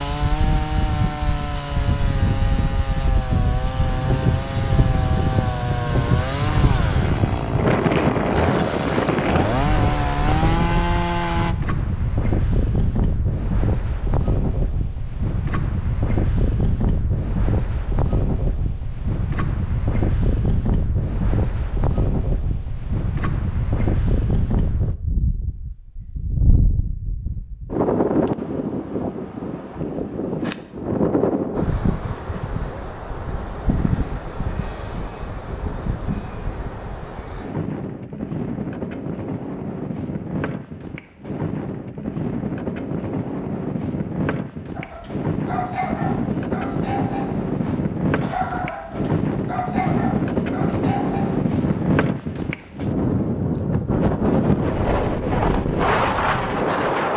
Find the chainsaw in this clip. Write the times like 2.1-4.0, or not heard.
0.0-11.6.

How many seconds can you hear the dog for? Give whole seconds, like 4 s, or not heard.
7 s.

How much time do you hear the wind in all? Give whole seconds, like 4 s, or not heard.
57 s.